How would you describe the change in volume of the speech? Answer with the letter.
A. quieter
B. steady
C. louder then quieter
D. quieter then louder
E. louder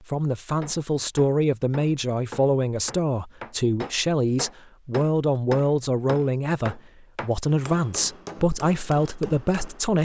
B.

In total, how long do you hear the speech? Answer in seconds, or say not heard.
10 s.